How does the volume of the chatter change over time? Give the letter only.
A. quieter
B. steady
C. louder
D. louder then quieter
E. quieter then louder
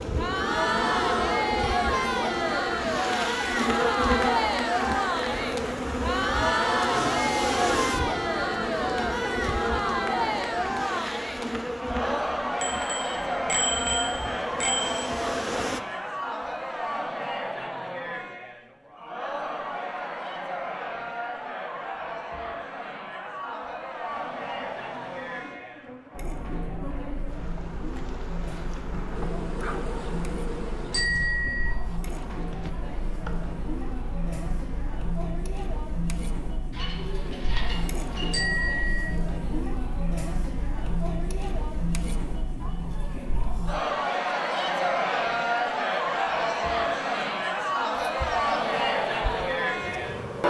E.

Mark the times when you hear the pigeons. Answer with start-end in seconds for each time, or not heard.
6.8-8.3, 36.7-38.4.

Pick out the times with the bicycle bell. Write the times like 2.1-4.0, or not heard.
12.6-15.1, 30.9-31.7, 38.3-39.1.